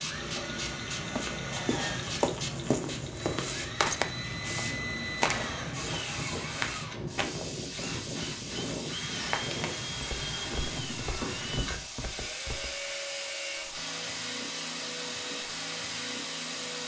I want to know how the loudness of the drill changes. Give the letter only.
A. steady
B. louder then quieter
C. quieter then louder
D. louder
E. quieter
A.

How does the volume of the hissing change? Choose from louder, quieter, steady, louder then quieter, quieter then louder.
steady.